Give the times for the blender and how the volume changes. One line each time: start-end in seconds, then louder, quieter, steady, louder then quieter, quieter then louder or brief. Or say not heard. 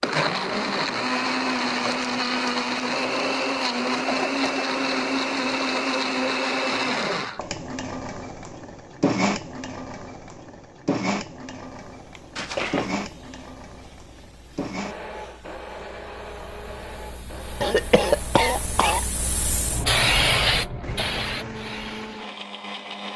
0.0-23.1 quieter.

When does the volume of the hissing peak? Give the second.
20 s.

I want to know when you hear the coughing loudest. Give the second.
18 s.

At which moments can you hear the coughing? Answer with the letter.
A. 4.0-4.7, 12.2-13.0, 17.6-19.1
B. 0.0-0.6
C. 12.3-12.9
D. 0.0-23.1
A.